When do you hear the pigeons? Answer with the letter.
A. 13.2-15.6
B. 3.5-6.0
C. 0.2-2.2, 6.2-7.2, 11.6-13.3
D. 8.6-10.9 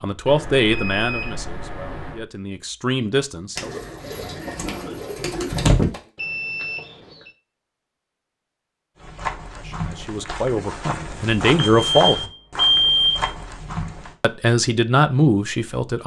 B.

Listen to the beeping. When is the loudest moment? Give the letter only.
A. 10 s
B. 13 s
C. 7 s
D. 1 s
B.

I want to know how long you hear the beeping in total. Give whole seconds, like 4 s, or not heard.
5 s.